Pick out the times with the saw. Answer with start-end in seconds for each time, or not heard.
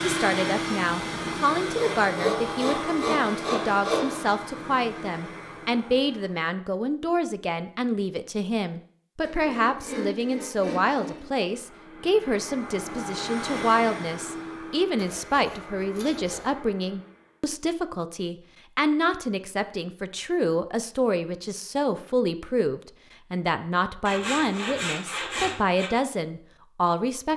1.7-4.3, 9.2-11.3, 14.9-16.6, 24.1-25.9.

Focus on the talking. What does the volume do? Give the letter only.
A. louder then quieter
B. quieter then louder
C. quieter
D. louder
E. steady
E.